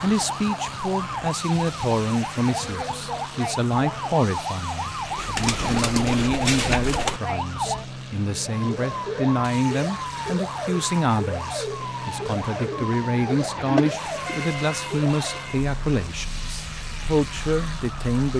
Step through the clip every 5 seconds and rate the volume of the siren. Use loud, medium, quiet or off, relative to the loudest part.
loud, loud, loud, medium.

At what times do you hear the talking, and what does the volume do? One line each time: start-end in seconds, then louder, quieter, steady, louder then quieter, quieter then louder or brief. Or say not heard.
0.0-18.3 steady.